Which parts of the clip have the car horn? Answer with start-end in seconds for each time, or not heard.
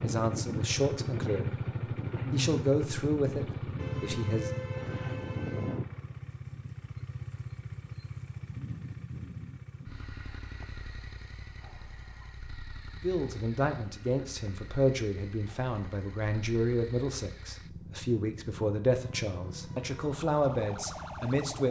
3.8-5.8.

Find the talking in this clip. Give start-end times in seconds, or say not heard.
0.0-1.5, 2.3-4.5, 13.0-21.6.